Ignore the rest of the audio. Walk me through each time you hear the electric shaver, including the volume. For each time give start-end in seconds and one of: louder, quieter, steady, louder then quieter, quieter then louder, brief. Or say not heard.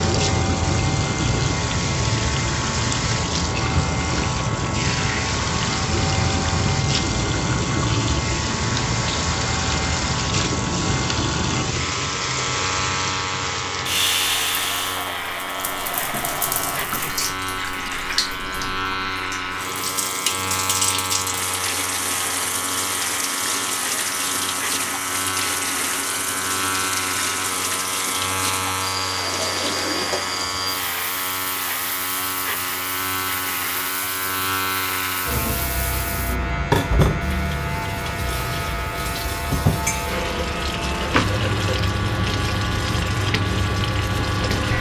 0.0-44.7 steady.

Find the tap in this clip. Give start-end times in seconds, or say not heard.
0.0-44.7.